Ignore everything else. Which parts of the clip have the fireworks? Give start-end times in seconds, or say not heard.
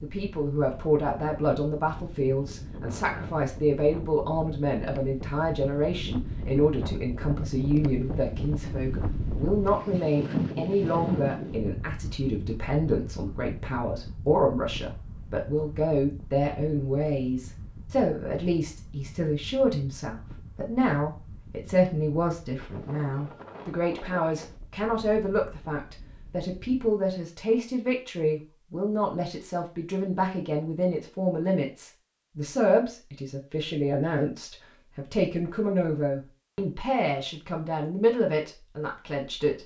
not heard.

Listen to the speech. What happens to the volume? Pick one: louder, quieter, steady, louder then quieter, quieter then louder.
steady.